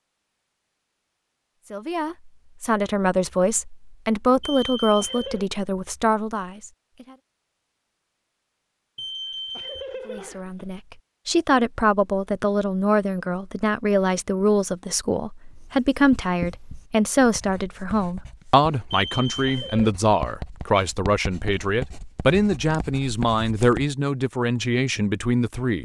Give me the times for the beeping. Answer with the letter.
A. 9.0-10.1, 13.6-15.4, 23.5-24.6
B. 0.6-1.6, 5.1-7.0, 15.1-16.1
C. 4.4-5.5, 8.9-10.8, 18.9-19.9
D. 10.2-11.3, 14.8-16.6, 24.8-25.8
C.